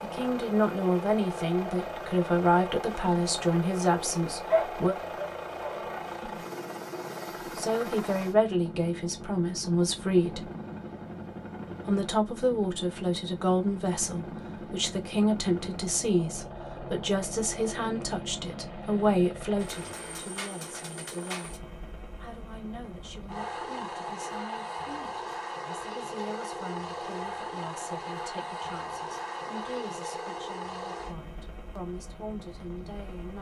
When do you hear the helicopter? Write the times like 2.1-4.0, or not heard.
0.0-33.3.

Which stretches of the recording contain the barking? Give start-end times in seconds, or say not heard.
4.5-6.0.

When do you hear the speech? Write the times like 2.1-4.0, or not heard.
0.0-5.0, 7.5-10.5, 11.8-21.6, 22.2-33.3.